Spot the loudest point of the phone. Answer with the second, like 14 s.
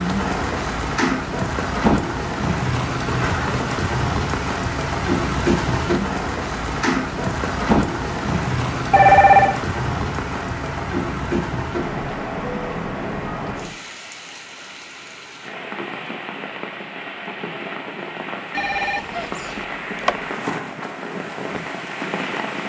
9 s.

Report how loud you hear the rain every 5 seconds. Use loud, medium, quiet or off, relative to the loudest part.
loud, loud, medium, medium, medium.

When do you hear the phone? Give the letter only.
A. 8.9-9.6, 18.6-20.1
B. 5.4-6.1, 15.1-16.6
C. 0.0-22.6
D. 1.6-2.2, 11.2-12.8
A.